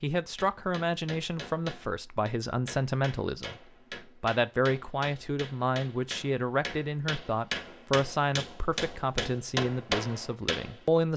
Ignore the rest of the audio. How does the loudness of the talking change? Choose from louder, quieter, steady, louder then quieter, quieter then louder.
steady.